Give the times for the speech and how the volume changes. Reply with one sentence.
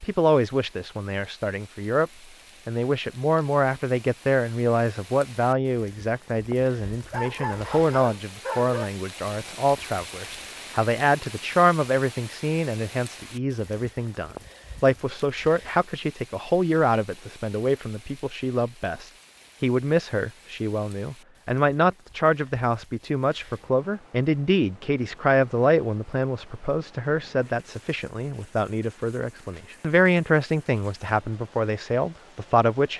You can hear the speech from 0.0 to 32.9 s, at a steady volume.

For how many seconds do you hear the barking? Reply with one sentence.
You can hear the barking for 2 seconds altogether.